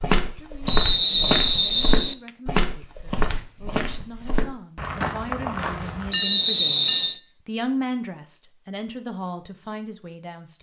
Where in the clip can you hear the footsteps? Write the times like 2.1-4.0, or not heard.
0.0-6.1.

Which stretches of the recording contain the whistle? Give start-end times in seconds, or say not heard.
0.7-2.1, 6.1-7.2.